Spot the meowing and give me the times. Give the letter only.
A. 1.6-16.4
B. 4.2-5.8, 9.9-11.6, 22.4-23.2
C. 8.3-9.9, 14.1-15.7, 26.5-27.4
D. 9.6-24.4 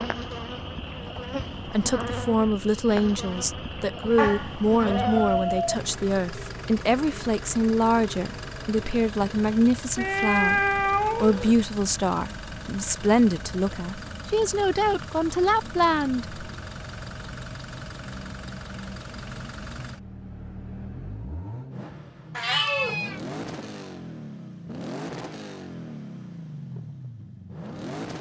B.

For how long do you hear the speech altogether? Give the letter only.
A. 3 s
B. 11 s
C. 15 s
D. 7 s
C.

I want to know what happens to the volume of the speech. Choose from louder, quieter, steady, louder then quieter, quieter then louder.
steady.